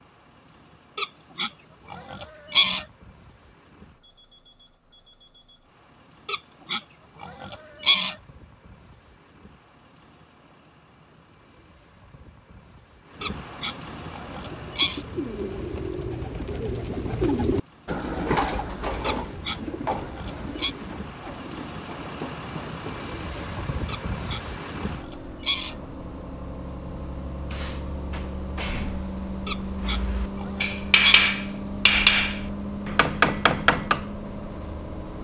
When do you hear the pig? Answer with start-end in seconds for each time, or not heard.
0.9-2.9, 6.2-8.2, 13.2-15.1, 19.0-20.8, 23.9-25.8, 29.4-31.4.